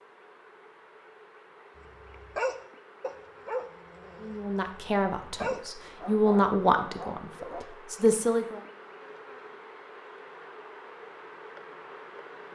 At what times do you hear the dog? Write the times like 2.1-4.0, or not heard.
2.0-7.7.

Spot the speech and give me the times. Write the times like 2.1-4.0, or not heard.
4.2-8.6.